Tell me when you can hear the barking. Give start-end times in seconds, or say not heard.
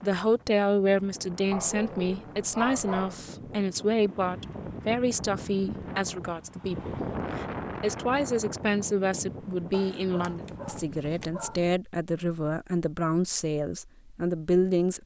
1.5-3.3, 9.7-11.6.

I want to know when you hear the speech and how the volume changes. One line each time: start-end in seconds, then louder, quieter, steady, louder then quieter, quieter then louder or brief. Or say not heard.
0.0-15.0 steady.